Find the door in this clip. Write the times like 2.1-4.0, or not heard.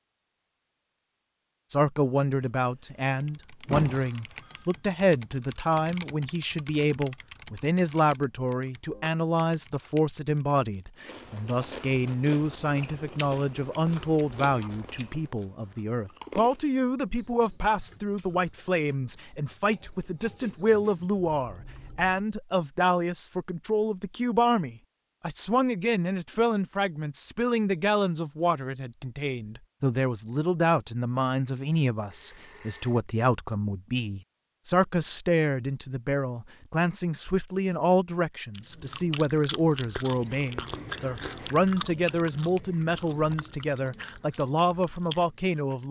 2.5-3.0, 3.6-4.1.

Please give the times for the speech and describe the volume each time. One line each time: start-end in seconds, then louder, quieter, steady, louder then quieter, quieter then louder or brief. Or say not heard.
1.7-45.8 steady.